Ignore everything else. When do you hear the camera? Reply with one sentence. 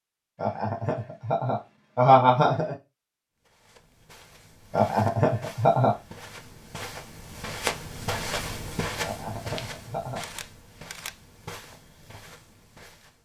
You can hear the camera from 10.2 to 11.2 s.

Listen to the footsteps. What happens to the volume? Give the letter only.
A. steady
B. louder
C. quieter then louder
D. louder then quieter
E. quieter
D.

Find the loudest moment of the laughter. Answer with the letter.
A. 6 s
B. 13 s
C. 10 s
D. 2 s
D.